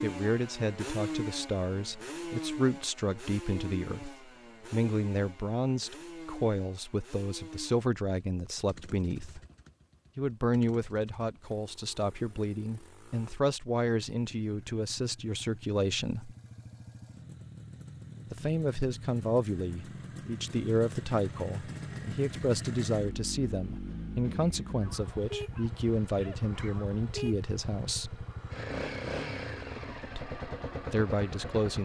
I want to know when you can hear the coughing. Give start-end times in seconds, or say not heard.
not heard.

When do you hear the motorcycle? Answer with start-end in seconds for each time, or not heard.
0.0-31.8.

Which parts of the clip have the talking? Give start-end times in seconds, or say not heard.
0.0-9.4, 10.2-16.4, 18.3-28.2, 30.1-31.8.